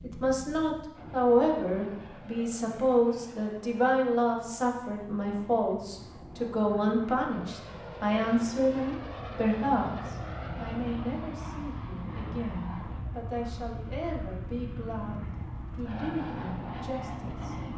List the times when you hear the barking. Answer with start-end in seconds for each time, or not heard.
not heard.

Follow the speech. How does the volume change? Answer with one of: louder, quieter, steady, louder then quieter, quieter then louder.
quieter.